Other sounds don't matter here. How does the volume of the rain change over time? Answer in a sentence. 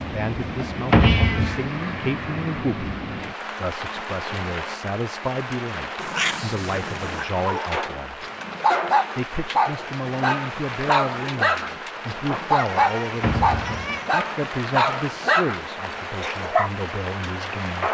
The loudness of the rain stays about the same.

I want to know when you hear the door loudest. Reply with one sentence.
The volume of the door peaks at 1 second.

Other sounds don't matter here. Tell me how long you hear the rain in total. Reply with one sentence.
You can hear the rain for 18 seconds altogether.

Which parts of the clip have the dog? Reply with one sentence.
You can hear the dog from 7.5 to 16.7 s.